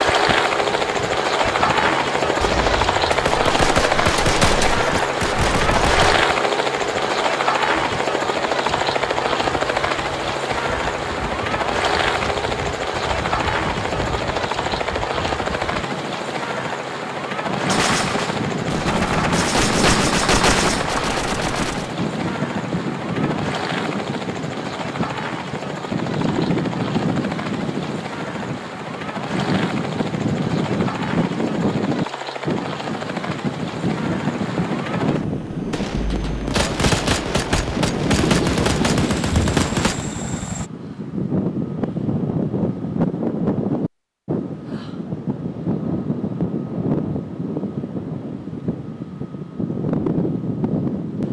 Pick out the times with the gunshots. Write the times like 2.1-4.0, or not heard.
2.4-6.2, 17.7-21.9, 35.7-40.0.